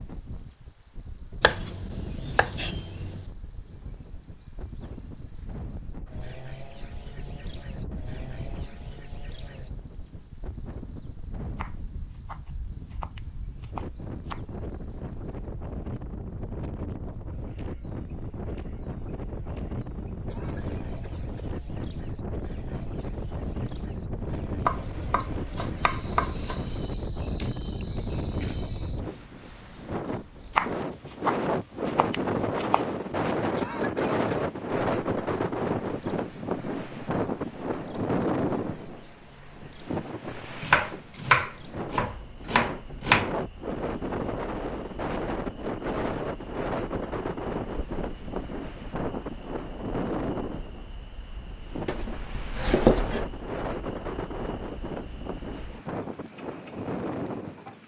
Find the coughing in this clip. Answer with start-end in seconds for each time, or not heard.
20.2-21.5, 33.5-34.5.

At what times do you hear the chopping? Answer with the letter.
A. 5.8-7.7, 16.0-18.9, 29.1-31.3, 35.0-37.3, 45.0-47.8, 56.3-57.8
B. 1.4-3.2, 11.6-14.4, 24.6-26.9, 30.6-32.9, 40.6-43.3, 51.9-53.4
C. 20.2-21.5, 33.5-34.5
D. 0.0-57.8
B.